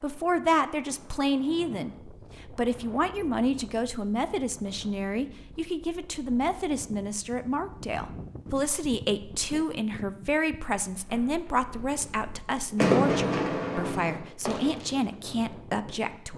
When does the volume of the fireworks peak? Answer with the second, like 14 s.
13 s.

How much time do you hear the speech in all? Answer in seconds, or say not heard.
16 s.